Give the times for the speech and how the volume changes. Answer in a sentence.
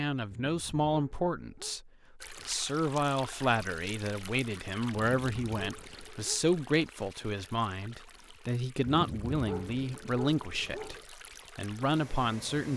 You can hear the speech from 0.0 to 10.9 s, at a steady volume; and briefly from 11.6 to 12.7 s.